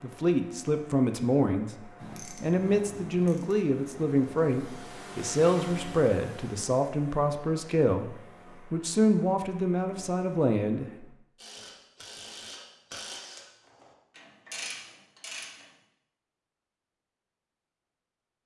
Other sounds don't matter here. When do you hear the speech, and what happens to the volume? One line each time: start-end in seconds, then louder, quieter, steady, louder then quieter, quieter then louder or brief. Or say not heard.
0.0-11.1 steady.